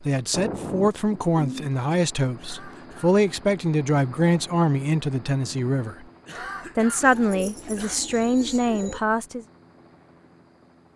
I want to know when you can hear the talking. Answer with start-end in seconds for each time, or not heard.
0.0-6.0, 6.8-9.4.